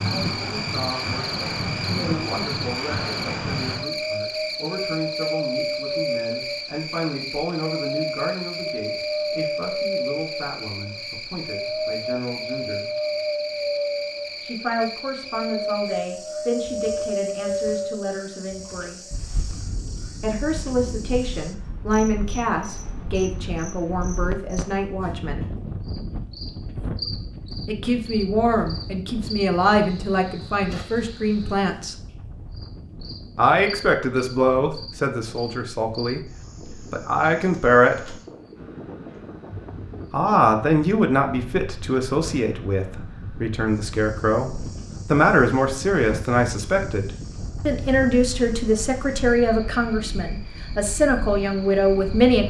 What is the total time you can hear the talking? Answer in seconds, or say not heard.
44 s.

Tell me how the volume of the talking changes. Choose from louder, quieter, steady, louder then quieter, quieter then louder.
louder.